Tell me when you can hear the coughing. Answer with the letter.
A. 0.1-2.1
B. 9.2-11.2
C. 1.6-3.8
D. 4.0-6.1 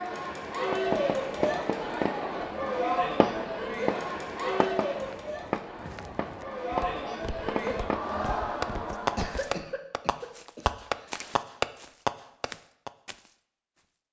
B.